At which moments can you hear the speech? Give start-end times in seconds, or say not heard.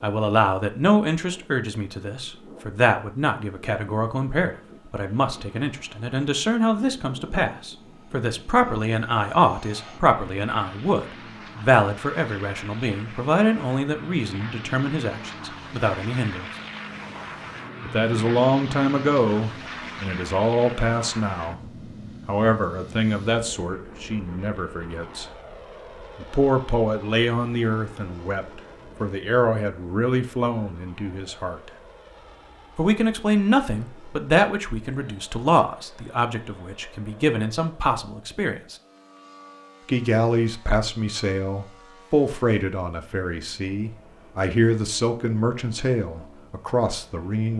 0.0-16.5, 17.8-21.6, 22.2-25.2, 26.1-31.7, 32.8-38.8, 39.9-47.5.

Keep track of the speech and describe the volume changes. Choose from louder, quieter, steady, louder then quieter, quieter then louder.
steady.